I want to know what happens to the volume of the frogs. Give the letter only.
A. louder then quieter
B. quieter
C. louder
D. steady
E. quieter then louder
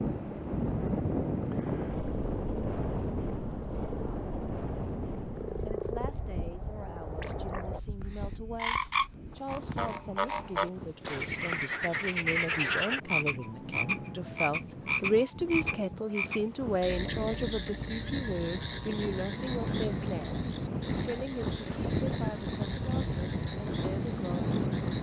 A.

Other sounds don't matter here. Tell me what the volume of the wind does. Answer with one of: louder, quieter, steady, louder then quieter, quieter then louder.
quieter then louder.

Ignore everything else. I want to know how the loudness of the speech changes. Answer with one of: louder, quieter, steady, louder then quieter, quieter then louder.
louder then quieter.